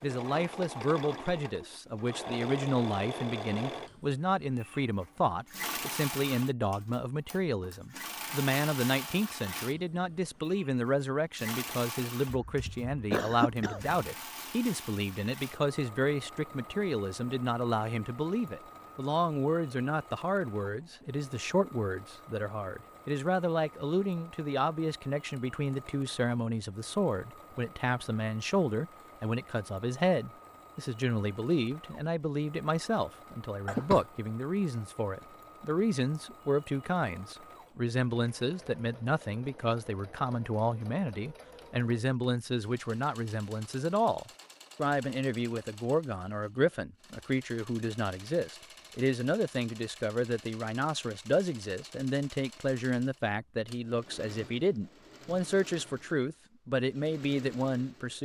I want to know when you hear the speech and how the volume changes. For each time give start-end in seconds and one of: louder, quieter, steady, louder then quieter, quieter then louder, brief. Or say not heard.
0.0-58.2 steady.